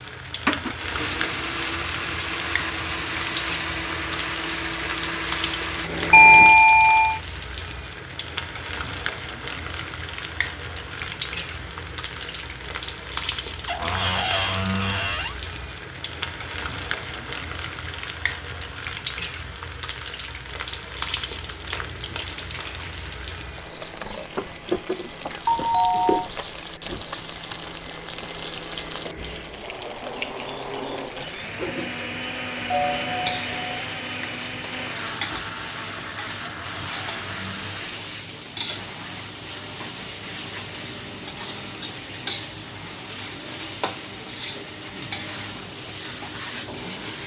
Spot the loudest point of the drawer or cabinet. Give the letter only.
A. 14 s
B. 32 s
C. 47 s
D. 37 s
A.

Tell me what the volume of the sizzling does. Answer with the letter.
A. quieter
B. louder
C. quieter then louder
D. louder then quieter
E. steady
E.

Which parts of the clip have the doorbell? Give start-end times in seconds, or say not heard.
6.1-7.2, 25.4-26.2, 32.7-33.8.